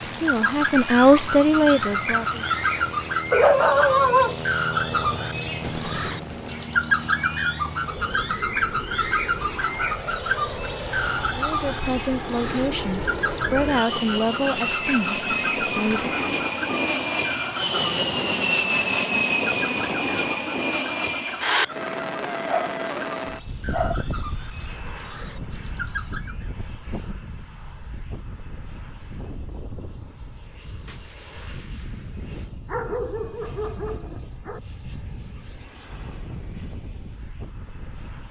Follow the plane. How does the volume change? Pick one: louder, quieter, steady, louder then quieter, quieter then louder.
louder then quieter.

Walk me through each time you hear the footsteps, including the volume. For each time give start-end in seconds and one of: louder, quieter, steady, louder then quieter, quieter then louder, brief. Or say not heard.
not heard.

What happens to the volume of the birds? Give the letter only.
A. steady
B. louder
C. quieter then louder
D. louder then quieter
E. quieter
E.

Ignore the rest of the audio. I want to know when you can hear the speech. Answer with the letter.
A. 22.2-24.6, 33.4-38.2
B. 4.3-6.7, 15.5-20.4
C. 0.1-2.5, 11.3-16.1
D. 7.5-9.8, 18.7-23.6
C.